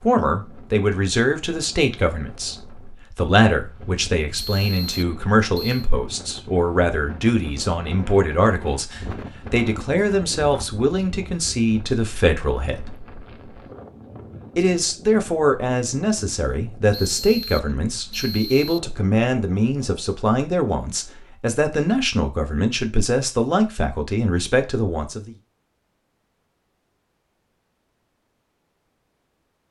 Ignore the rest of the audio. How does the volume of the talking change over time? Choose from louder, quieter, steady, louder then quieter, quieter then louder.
steady.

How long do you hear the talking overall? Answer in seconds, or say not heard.
24 s.